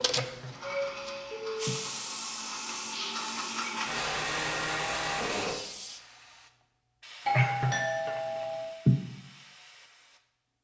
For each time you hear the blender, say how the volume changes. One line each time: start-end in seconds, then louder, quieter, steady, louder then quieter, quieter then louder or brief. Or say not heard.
0.0-5.6 louder.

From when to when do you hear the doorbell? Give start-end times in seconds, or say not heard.
0.6-1.8, 7.2-8.7.